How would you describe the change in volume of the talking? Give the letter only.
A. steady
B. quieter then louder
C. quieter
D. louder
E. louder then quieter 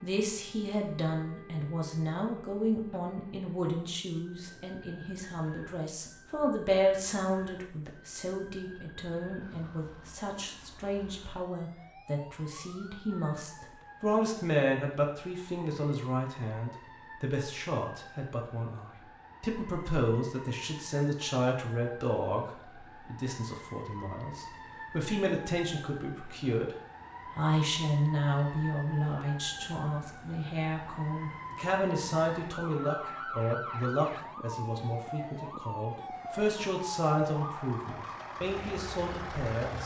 A.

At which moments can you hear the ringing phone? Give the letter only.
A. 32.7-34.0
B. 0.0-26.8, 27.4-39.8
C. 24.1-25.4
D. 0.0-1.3
A.